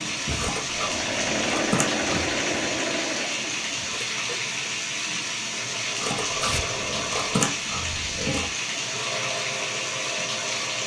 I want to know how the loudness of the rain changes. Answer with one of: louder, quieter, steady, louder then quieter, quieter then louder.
steady.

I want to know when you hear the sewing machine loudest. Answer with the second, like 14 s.
2 s.